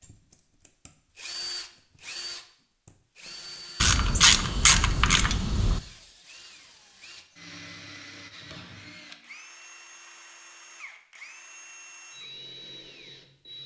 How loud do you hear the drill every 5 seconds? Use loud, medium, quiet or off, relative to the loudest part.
loud, medium, medium.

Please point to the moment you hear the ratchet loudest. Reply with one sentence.
The volume of the ratchet peaks at 4 seconds.